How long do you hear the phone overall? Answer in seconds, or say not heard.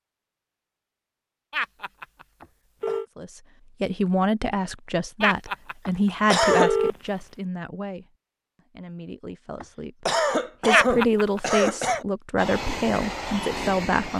4 s.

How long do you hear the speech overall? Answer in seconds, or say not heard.
11 s.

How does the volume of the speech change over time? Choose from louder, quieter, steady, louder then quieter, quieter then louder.
quieter then louder.